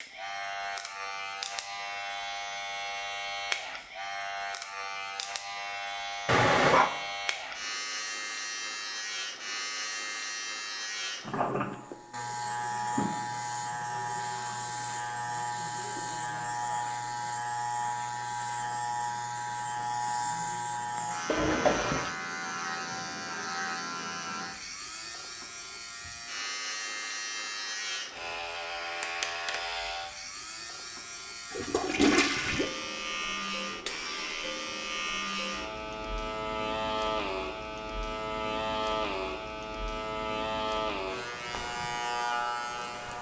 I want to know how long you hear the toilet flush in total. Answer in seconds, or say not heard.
3 s.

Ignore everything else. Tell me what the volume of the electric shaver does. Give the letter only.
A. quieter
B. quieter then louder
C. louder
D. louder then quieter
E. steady
E.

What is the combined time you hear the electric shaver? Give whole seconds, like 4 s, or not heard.
43 s.